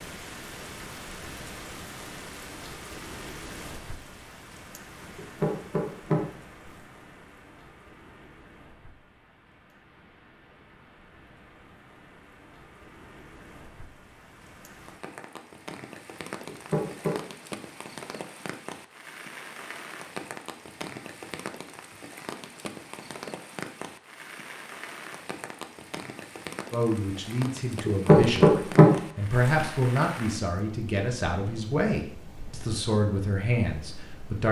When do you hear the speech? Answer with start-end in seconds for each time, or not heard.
26.7-34.4.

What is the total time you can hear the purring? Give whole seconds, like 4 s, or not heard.
not heard.